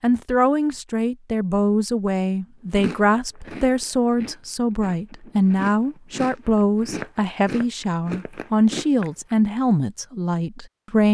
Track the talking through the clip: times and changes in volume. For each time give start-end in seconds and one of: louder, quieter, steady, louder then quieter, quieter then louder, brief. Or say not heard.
0.0-11.0 steady.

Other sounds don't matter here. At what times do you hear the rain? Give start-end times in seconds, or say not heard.
not heard.